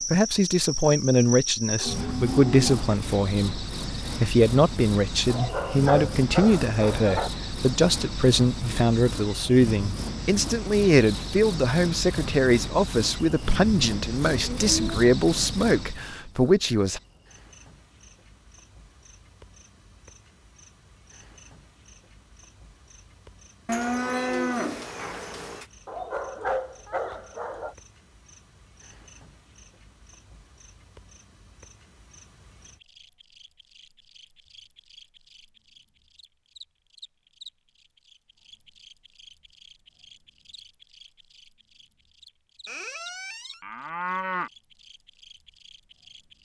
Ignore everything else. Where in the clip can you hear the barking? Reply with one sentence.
You can hear the barking from 5.2 to 7.3 s and from 25.9 to 27.8 s.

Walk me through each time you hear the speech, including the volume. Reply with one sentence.
You can hear the speech from 0.1 to 17.0 s, at a steady volume.